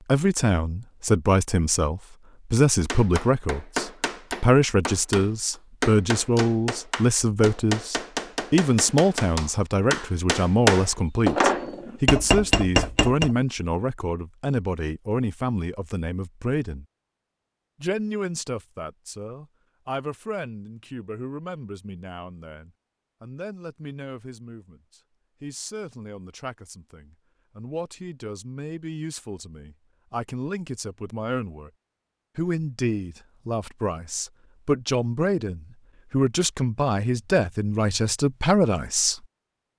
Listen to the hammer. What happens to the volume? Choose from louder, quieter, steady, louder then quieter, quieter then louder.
louder.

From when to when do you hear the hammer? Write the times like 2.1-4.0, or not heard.
2.9-13.3.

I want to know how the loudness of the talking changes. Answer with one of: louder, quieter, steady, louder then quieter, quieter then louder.
quieter then louder.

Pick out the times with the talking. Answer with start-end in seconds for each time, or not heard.
0.1-16.9, 17.8-31.7, 32.4-39.2.